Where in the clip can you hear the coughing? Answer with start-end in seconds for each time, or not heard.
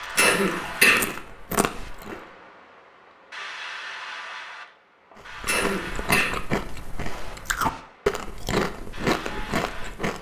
0.1-1.1, 5.5-6.4.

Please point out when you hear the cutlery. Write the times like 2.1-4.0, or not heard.
not heard.